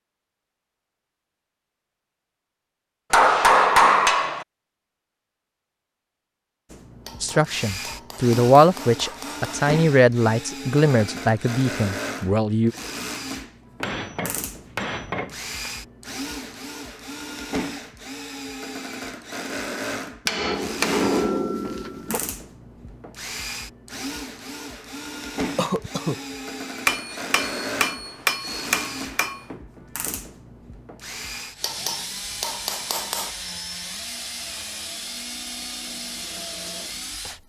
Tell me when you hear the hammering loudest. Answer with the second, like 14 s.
4 s.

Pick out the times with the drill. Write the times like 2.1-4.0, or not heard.
6.7-37.4.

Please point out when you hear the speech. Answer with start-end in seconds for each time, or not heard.
7.2-12.7.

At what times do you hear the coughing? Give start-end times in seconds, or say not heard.
25.6-26.2.